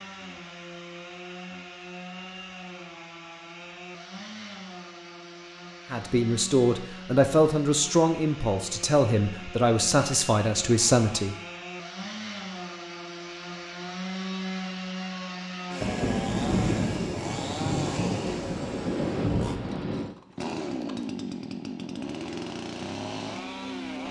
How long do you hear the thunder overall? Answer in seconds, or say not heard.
4 s.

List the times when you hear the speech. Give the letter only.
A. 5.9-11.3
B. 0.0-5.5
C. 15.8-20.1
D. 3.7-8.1
A.